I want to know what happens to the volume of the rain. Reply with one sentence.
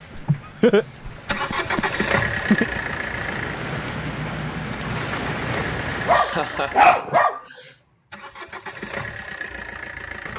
The volume of the rain goes up.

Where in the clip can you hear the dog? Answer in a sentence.
You can hear the dog from 6.0 to 7.4 s.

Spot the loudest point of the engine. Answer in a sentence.
The volume of the engine peaks at 2 seconds.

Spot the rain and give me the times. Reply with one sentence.
You can hear the rain from 0.0 to 6.2 s.